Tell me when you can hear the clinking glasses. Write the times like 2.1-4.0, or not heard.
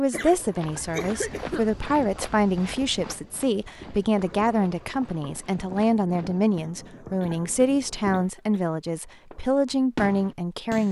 not heard.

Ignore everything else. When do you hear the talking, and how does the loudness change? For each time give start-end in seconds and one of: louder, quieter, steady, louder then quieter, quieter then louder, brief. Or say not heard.
0.0-10.8 steady.